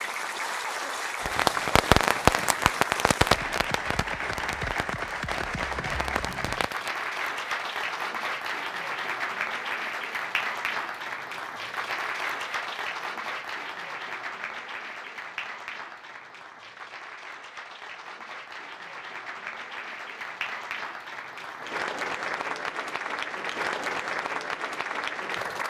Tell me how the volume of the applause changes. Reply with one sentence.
The loudness of the applause goes down, then up.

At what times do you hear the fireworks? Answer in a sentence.
The fireworks can be heard from 1.2 to 7.0 s.